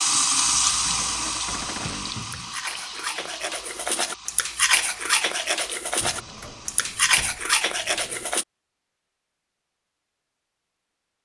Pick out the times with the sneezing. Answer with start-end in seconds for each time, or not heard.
not heard.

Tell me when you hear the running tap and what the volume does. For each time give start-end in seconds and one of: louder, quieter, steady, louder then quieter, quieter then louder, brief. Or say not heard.
0.0-6.9 quieter.